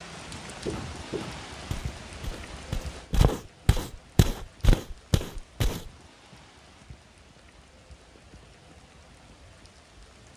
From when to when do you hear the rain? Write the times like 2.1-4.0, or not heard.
0.0-10.3.